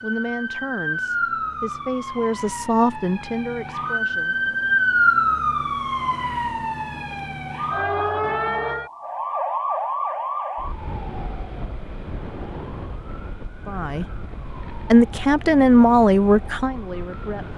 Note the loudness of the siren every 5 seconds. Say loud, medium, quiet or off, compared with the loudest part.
loud, loud, medium, quiet.